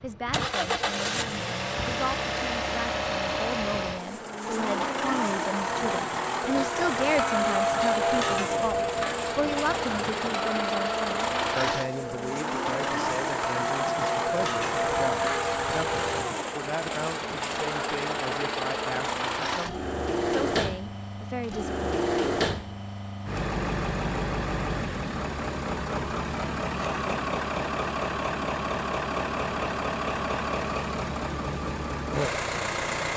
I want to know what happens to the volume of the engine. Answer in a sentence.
The loudness of the engine stays about the same.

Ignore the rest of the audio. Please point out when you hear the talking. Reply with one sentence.
You can hear the talking from 0.0 to 21.8 s.